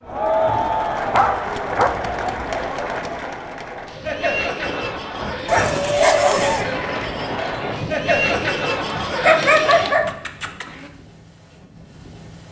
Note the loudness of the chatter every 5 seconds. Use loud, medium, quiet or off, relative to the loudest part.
loud, loud, off.